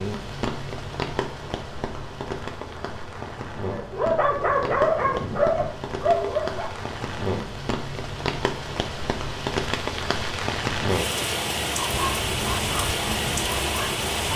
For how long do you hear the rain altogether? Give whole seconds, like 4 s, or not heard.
14 s.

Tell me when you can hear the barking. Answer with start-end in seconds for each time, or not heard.
3.7-6.7, 11.8-14.3.